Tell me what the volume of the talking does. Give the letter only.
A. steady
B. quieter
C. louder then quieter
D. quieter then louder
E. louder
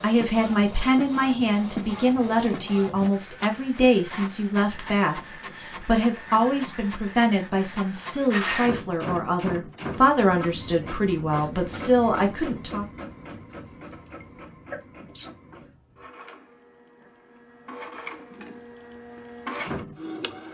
A.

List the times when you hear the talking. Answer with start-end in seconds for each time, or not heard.
0.0-12.8.